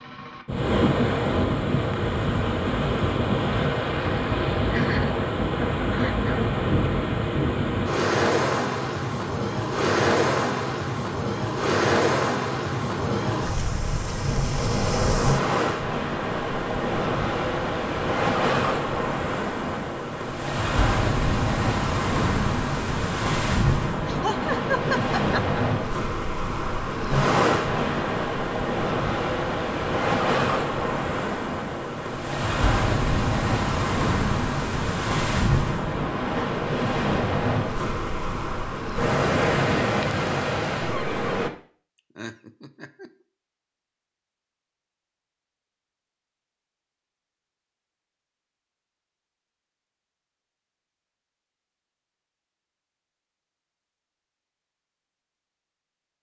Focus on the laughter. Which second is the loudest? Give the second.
25 s.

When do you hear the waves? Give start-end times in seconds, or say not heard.
0.0-41.5.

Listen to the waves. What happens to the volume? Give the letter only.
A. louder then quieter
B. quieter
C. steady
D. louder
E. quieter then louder
C.